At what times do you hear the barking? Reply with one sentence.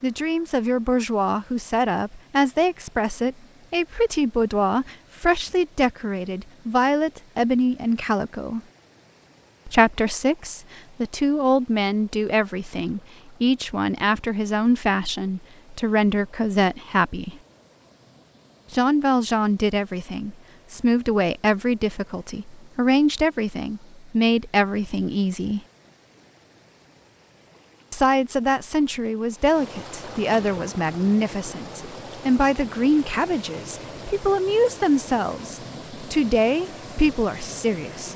You can't hear the barking here.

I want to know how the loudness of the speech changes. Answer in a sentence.
The loudness of the speech stays about the same.